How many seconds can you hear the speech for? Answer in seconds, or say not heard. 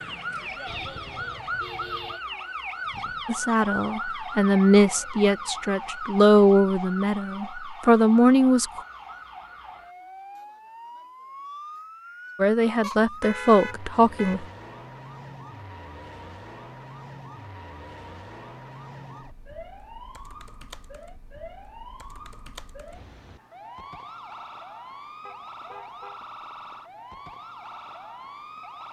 8 s.